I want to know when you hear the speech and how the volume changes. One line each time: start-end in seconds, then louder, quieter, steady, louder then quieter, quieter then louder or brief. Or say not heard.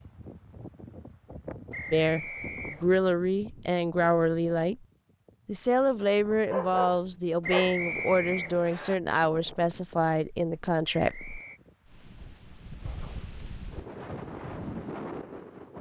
1.9-4.8 brief
5.5-11.3 steady.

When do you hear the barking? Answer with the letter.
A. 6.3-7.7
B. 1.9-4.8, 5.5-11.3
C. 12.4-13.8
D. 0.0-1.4
A.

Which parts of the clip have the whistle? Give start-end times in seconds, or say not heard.
1.7-3.0, 7.4-8.9, 10.8-11.6.